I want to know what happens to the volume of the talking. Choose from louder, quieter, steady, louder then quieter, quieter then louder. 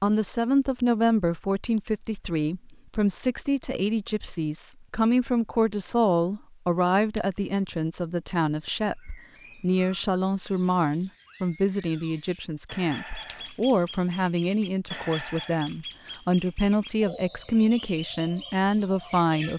steady.